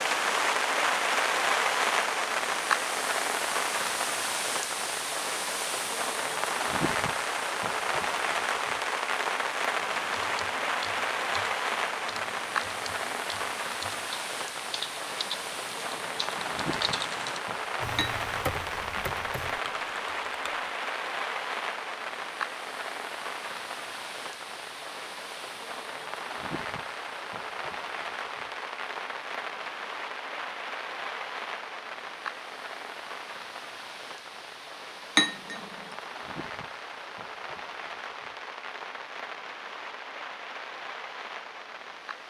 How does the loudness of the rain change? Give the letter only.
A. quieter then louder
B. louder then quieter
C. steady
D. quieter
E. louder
D.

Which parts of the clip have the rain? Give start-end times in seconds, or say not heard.
0.0-42.2.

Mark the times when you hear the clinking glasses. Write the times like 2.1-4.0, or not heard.
17.9-19.2, 35.1-36.0.